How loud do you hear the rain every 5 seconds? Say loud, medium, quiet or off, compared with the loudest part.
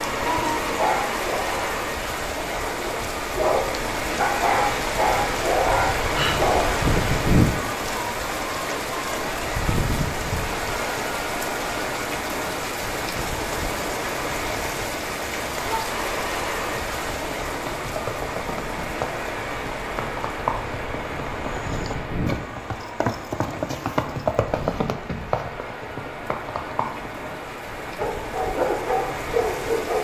loud, loud, loud, medium, medium, medium.